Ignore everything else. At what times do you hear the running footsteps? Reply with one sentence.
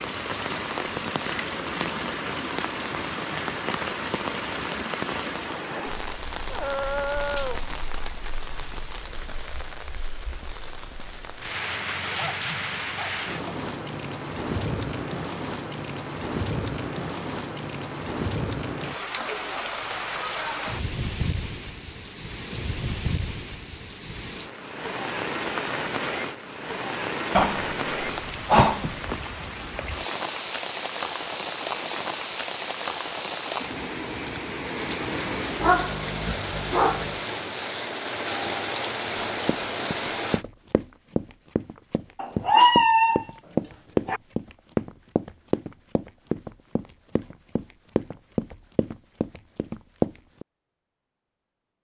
You can hear the running footsteps from 39.5 to 50.5 s.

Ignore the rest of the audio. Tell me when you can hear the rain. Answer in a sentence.
You can hear the rain from 0.0 to 40.5 s.